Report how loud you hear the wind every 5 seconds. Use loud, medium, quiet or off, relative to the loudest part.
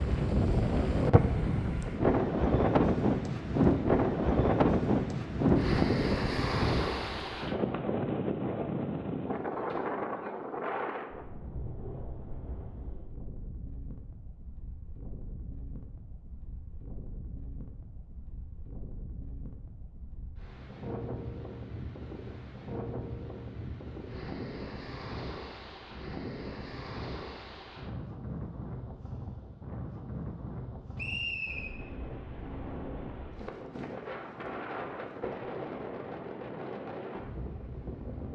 loud, loud, quiet, quiet, quiet, quiet, quiet, quiet.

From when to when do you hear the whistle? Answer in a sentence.
You can hear the whistle from 30.9 to 31.7 s.